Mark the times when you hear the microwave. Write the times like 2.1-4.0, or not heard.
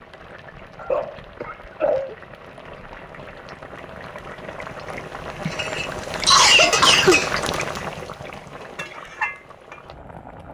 not heard.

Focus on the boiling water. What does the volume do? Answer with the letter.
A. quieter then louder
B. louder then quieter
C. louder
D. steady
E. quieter
B.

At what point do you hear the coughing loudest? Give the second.
6 s.